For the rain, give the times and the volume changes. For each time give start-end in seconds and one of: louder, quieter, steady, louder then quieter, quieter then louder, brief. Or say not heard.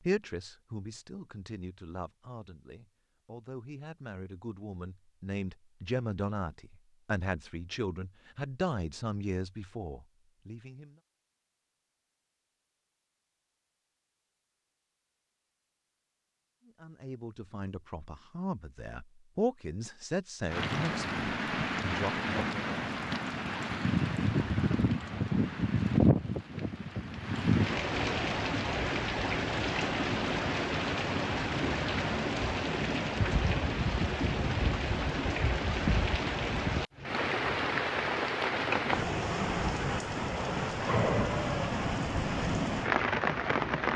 20.4-43.9 steady.